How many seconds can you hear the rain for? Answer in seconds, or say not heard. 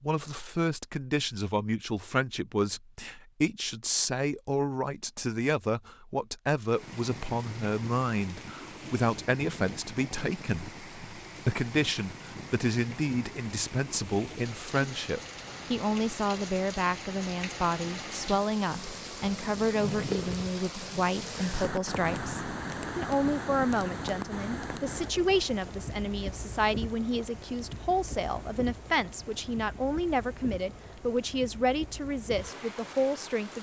27 s.